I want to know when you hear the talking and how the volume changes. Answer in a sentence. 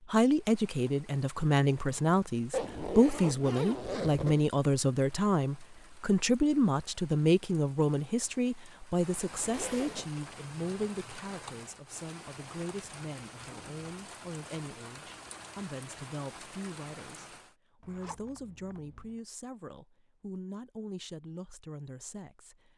The talking can be heard from 0.1 to 22.7 s, getting quieter.